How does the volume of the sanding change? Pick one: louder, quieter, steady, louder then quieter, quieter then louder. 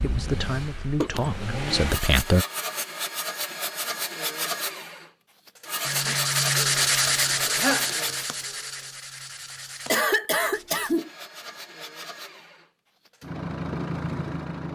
quieter.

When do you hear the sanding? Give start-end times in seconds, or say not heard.
5.8-11.0.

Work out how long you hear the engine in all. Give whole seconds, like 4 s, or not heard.
12 s.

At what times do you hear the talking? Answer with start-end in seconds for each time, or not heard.
0.0-2.5.